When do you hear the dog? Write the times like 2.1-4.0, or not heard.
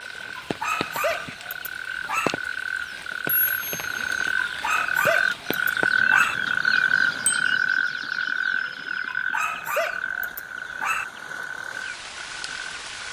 0.3-2.4, 4.3-6.3, 9.1-11.1.